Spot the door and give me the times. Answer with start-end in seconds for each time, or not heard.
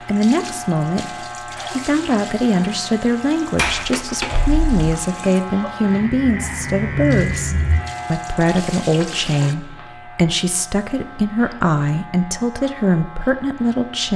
3.5-4.9.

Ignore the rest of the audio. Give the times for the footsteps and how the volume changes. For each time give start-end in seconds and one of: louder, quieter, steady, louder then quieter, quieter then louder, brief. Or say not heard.
not heard.